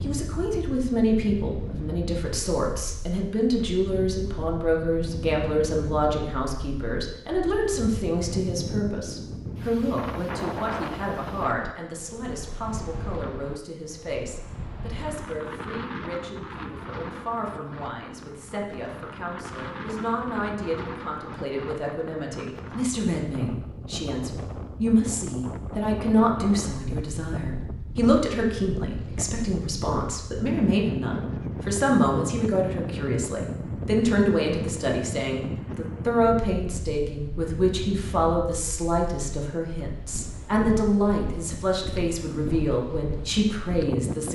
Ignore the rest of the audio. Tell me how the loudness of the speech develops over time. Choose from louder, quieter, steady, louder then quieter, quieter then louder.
quieter then louder.